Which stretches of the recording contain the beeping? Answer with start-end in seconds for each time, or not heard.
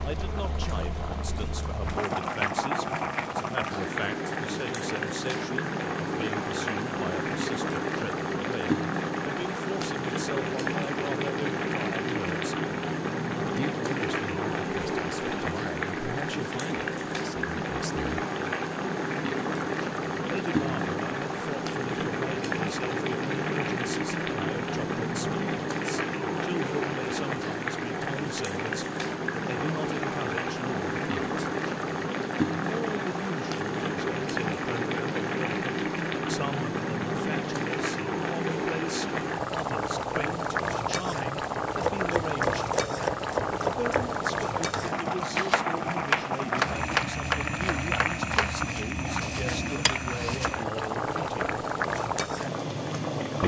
not heard.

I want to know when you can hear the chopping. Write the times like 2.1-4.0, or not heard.
41.8-50.5.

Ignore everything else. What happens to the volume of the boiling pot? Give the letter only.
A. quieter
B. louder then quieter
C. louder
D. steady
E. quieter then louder
D.